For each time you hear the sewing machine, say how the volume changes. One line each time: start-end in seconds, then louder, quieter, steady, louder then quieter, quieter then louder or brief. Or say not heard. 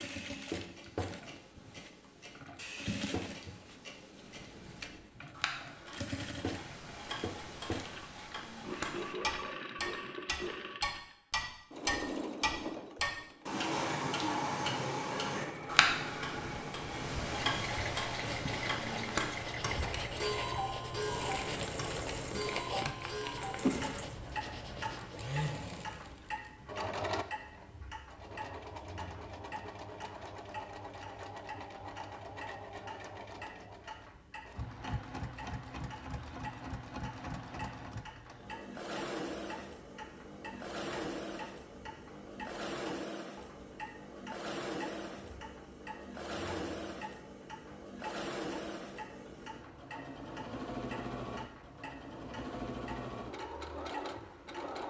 0.0-54.8 steady.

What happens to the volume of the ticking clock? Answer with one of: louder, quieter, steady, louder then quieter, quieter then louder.
louder then quieter.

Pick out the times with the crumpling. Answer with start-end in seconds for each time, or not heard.
21.3-23.8.